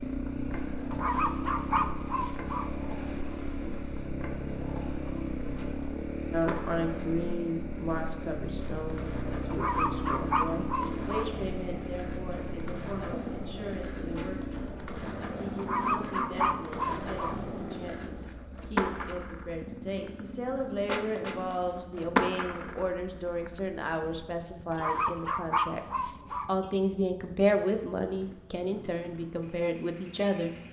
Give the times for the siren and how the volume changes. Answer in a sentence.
The siren can't be heard in this clip.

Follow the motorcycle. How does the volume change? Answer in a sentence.
The loudness of the motorcycle goes down.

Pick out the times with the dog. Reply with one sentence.
You can hear the dog from 0.9 to 2.7 s, from 9.5 to 11.3 s, from 15.6 to 17.4 s and from 24.7 to 26.5 s.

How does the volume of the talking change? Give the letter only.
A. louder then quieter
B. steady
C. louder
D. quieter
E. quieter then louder
E.